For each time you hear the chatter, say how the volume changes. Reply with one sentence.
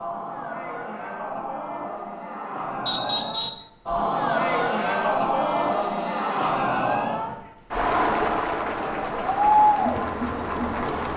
The chatter can be heard from 0.0 to 11.1 s, getting louder.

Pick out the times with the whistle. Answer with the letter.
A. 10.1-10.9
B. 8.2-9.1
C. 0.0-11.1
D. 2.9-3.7
D.